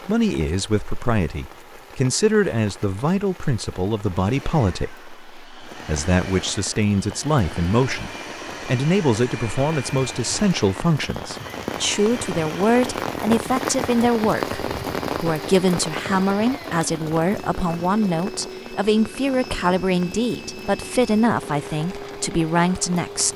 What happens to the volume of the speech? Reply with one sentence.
The loudness of the speech stays about the same.